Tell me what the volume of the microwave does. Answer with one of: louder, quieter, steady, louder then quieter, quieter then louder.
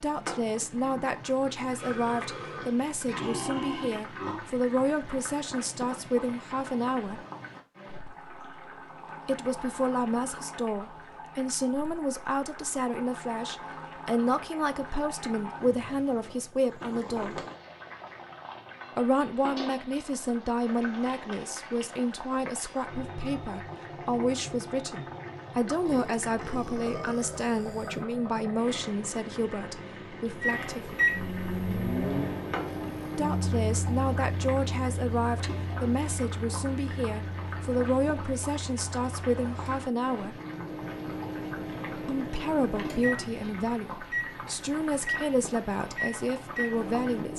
quieter then louder.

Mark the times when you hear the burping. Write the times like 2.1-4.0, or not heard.
1.8-4.5, 25.9-28.1.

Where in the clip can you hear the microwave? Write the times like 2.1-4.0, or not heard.
30.4-47.3.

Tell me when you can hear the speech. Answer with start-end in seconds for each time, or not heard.
0.0-7.2, 9.2-17.4, 18.9-31.0, 33.1-40.4, 42.0-47.3.